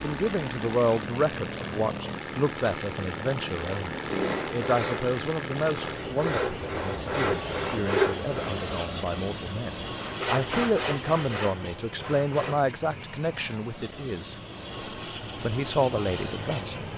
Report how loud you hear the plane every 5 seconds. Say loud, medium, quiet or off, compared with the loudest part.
loud, loud, medium, loud.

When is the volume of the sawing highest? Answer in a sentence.
The loudest moment of the sawing is at 8 seconds.